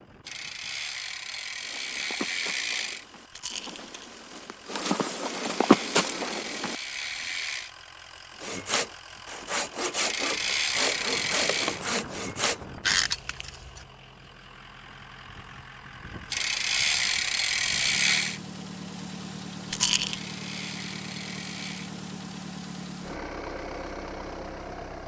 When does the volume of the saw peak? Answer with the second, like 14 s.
13 s.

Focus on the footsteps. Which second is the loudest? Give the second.
6 s.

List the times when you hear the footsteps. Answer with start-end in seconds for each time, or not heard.
1.6-6.8.